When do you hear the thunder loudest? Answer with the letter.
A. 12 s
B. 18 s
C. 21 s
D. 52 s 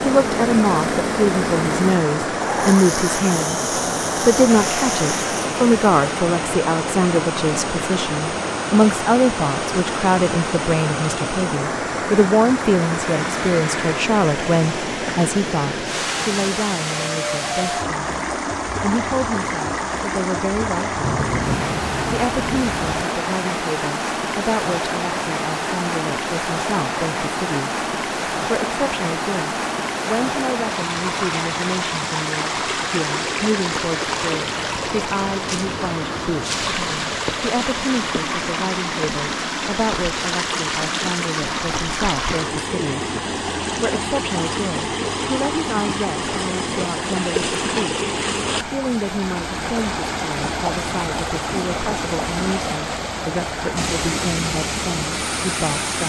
C.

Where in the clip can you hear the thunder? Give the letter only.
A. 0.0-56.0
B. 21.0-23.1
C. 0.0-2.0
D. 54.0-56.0
B.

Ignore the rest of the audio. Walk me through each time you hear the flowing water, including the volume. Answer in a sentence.
The flowing water can be heard from 0.0 to 56.0 s, at a steady volume.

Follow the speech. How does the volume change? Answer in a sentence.
The loudness of the speech goes down.